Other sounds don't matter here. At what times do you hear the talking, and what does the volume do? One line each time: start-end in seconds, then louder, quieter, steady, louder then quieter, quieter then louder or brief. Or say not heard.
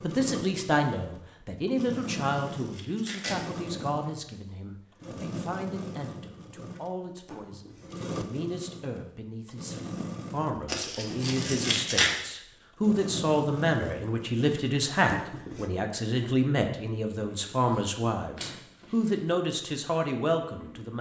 0.0-20.9 quieter then louder.